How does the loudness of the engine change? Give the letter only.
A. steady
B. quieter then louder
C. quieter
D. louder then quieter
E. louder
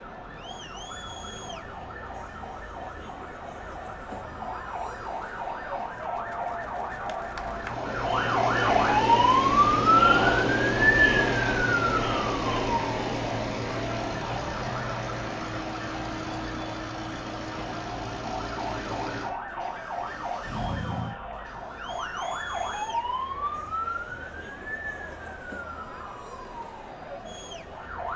C.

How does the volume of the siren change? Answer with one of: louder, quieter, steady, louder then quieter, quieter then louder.
louder then quieter.